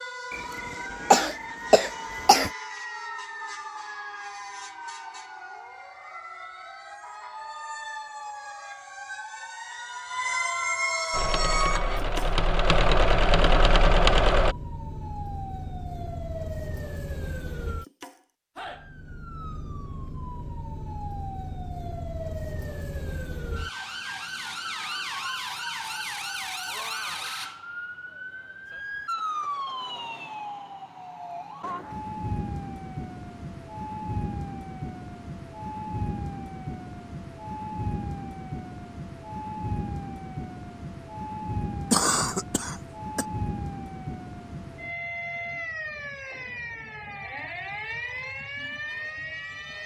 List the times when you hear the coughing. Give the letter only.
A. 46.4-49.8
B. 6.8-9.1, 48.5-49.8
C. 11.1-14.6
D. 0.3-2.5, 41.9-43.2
D.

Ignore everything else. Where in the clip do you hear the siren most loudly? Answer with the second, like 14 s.
11 s.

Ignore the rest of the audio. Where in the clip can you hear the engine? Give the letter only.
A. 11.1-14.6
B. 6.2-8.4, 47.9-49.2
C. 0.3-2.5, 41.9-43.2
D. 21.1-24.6
A.